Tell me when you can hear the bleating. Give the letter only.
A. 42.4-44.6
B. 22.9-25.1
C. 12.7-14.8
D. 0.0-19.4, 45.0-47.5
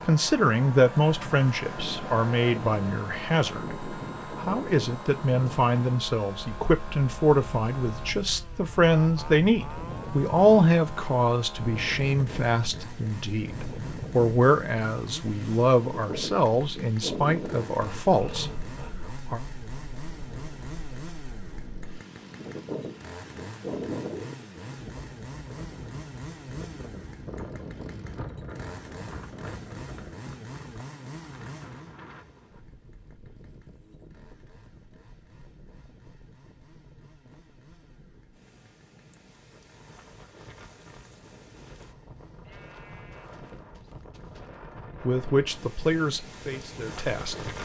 A.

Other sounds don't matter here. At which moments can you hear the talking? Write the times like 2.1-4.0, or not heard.
0.0-19.4, 45.0-47.5.